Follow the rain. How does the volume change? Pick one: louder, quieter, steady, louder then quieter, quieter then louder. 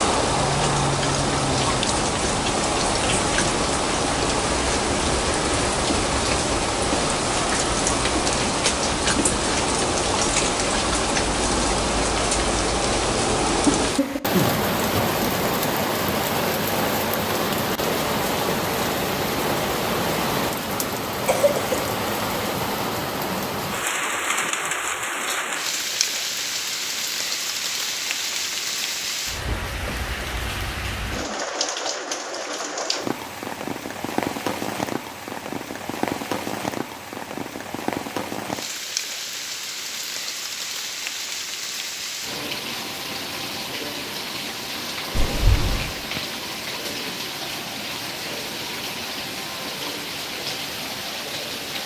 quieter.